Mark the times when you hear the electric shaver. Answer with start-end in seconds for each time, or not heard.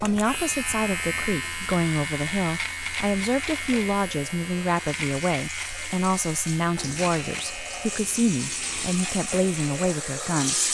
0.0-10.6.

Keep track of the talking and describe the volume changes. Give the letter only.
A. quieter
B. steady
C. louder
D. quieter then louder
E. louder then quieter
B.